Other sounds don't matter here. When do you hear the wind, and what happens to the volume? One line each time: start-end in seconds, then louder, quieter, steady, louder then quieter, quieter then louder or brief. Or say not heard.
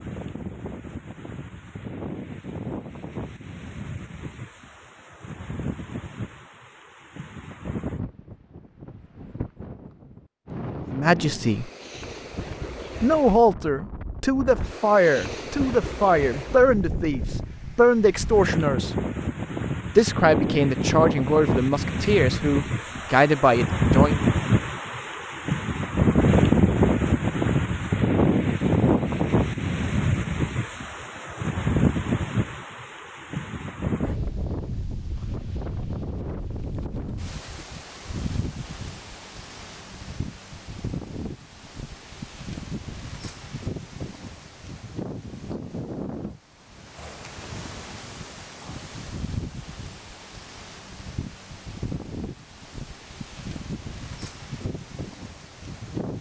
0.0-56.1 louder then quieter.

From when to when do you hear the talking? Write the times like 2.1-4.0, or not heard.
10.9-11.7, 13.0-18.9, 19.9-24.2.